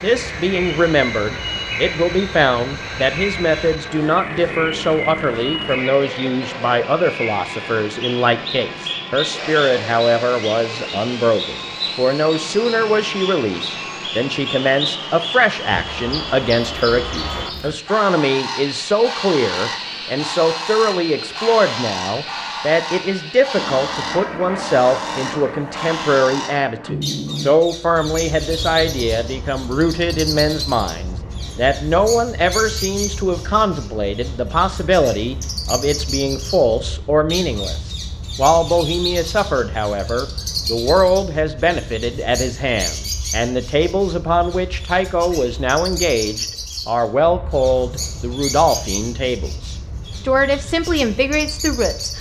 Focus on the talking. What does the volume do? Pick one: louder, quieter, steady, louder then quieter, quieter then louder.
steady.